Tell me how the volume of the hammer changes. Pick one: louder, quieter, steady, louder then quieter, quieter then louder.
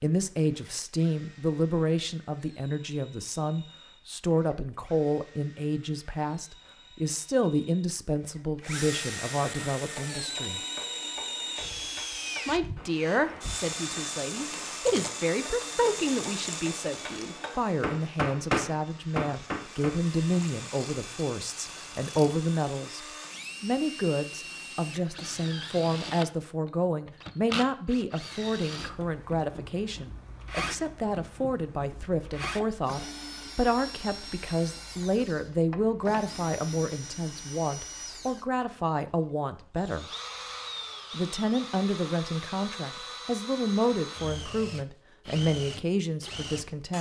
louder.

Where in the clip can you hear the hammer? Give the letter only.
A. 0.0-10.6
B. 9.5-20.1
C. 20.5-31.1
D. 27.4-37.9
B.